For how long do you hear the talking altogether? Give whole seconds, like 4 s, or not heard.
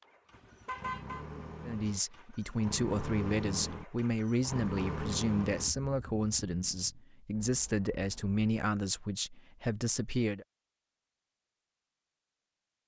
9 s.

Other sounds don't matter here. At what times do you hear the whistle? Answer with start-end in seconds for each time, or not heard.
not heard.